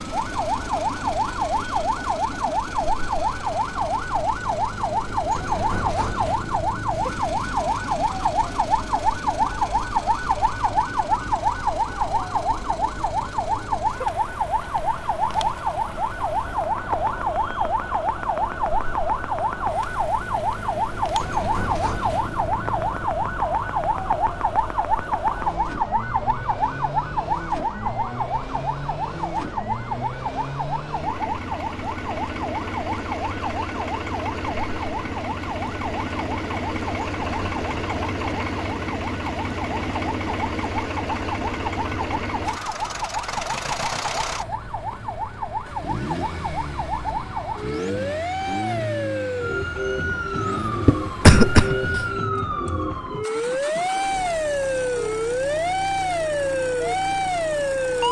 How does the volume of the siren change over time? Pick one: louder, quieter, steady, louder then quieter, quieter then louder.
quieter then louder.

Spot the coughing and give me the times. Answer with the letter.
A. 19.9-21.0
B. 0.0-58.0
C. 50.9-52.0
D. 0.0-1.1
C.